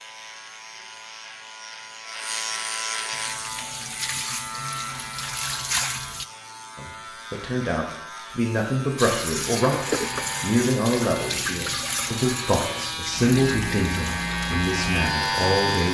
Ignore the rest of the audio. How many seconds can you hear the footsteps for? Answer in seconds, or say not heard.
not heard.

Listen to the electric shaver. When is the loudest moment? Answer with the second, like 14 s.
15 s.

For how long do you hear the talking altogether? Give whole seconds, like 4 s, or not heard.
9 s.